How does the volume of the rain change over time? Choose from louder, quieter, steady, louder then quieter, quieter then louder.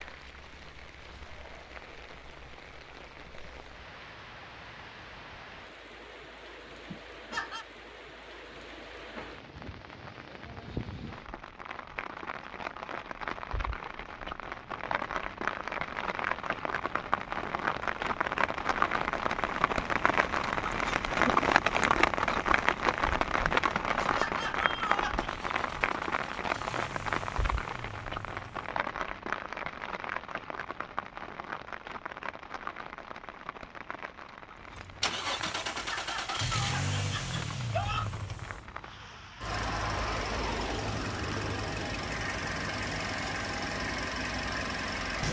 louder then quieter.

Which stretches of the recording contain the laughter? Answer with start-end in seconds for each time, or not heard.
6.9-7.7, 23.8-25.3, 35.5-38.1.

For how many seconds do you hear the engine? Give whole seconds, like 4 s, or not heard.
14 s.